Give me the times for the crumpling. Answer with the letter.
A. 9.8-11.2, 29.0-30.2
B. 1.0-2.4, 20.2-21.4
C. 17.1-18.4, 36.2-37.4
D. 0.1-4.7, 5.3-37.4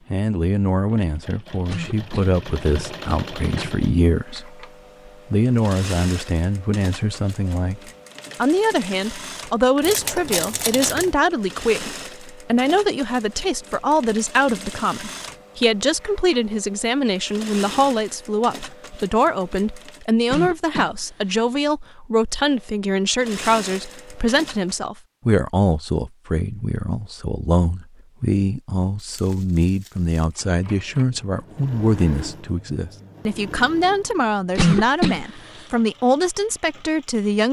A.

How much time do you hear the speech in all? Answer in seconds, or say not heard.
37 s.